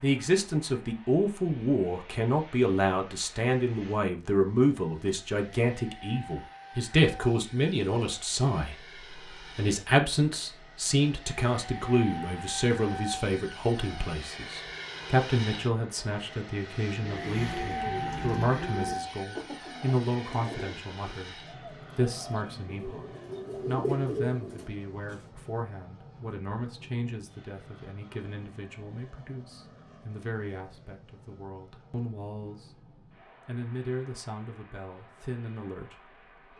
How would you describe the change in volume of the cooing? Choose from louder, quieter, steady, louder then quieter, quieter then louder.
quieter then louder.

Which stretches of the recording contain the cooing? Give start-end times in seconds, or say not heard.
16.9-25.2.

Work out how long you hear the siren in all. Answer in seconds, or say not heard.
not heard.